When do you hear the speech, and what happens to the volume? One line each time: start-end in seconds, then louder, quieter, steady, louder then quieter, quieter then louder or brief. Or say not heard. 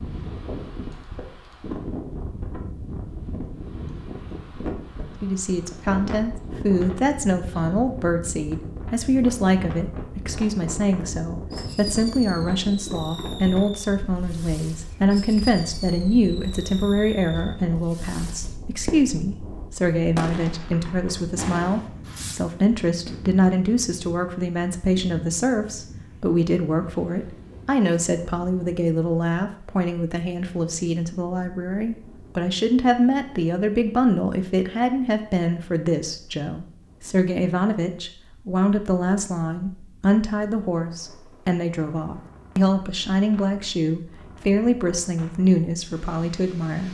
5.2-46.8 steady.